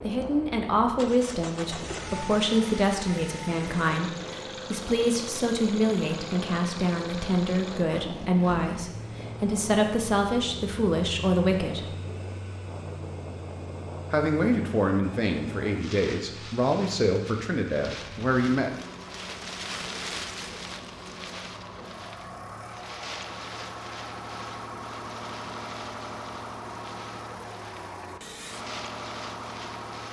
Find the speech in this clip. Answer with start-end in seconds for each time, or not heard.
0.0-11.9, 14.1-18.9.